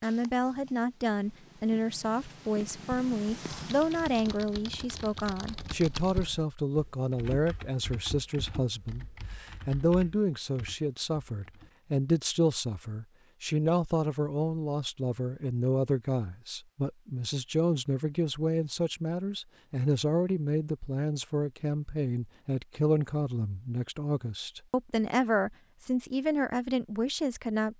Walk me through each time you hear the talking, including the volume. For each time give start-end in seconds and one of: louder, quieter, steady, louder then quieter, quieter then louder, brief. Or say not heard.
0.0-27.7 steady.